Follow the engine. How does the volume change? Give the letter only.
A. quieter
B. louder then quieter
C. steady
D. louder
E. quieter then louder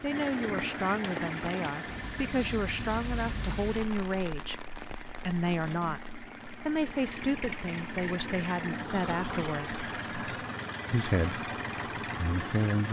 E.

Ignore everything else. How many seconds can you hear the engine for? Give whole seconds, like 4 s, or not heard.
13 s.